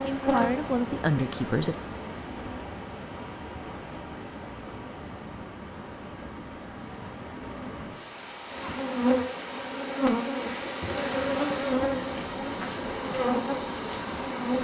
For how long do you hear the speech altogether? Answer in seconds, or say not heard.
2 s.